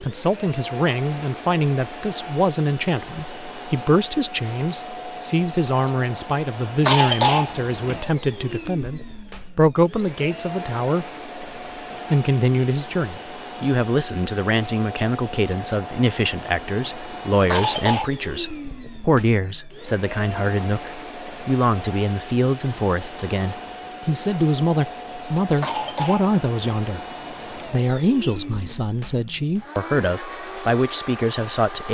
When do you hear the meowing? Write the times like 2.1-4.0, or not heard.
not heard.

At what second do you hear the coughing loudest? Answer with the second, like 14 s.
7 s.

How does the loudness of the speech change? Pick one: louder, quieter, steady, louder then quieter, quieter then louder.
steady.